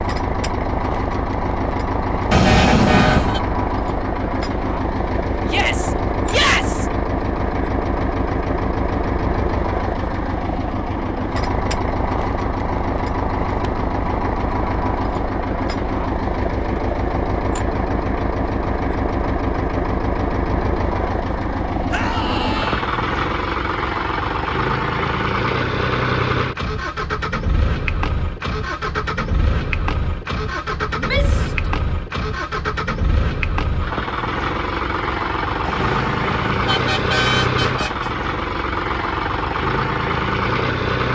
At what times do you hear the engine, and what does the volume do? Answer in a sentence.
You can hear the engine from 0.0 to 41.1 s, at a steady volume.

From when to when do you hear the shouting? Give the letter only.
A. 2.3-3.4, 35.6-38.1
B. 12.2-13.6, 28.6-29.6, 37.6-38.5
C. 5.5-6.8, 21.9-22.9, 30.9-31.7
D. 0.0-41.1
C.